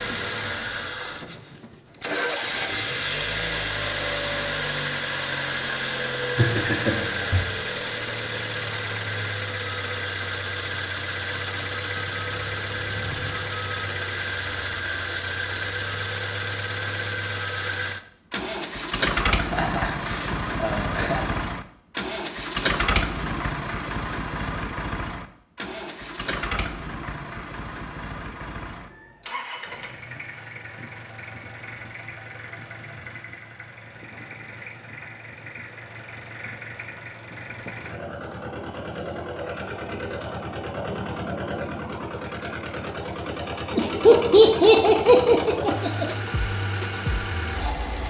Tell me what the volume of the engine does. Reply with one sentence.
The volume of the engine goes down, then up.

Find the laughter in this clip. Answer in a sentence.
You can hear the laughter from 6.3 to 7.4 s, from 19.4 to 21.4 s and from 43.8 to 46.0 s.